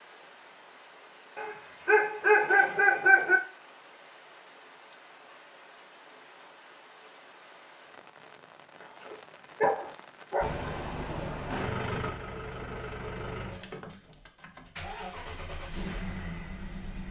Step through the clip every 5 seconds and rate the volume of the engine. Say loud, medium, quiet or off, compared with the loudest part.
off, off, loud, loud.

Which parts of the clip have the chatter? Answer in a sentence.
You can't hear the chatter here.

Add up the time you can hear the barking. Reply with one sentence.
The barking can be heard for 4 seconds in total.